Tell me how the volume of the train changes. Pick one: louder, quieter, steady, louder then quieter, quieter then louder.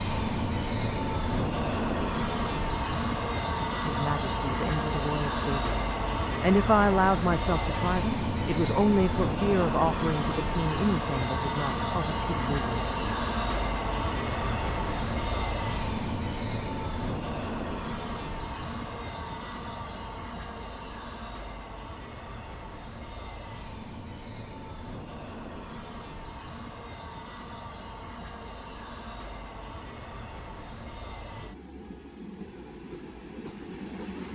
quieter.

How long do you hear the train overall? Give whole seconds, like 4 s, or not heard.
34 s.